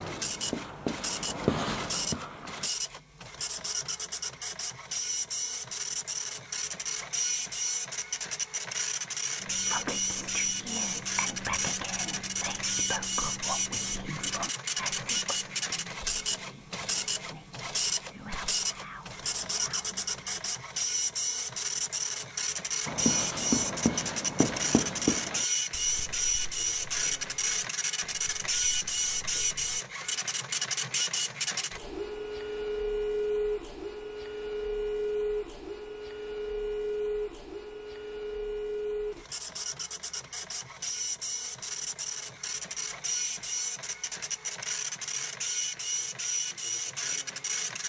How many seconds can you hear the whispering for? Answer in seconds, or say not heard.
11 s.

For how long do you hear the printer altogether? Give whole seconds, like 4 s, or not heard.
48 s.